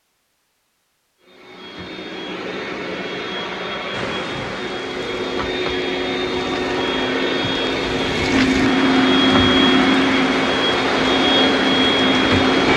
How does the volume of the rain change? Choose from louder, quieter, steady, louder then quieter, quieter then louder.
louder.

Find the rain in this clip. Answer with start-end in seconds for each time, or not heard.
3.9-12.7.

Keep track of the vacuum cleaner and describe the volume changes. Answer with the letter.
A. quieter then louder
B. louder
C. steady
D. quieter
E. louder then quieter
B.